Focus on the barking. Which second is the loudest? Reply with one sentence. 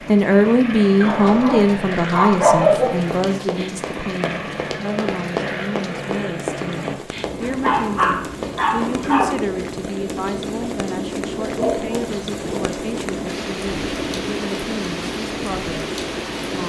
The loudest moment of the barking is at 3 seconds.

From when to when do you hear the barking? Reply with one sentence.
You can hear the barking from 1.0 to 3.0 s, from 7.4 to 9.3 s and from 11.4 to 12.8 s.